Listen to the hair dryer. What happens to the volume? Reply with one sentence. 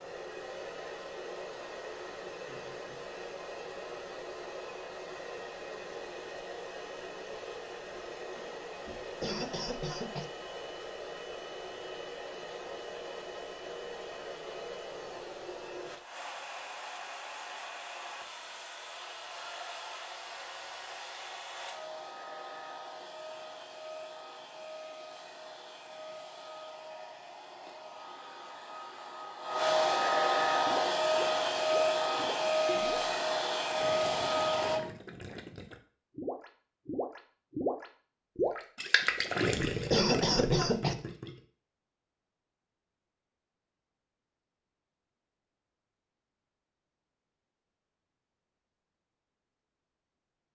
The volume of the hair dryer goes up.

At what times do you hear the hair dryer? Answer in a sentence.
You can hear the hair dryer from 0.0 to 34.8 s.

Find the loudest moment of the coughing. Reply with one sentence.
The loudest moment of the coughing is at 40 seconds.